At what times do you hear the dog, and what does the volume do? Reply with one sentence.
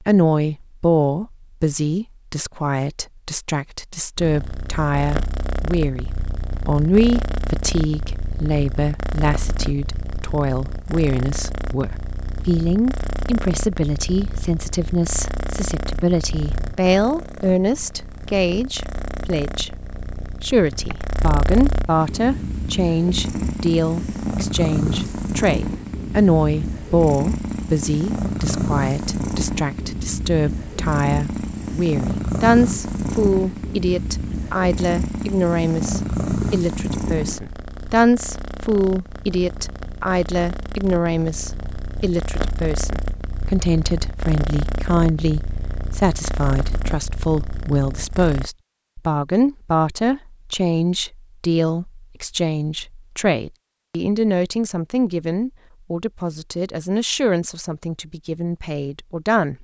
The dog can't be heard in this clip.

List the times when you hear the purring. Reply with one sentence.
You can hear the purring from 4.2 to 48.5 s.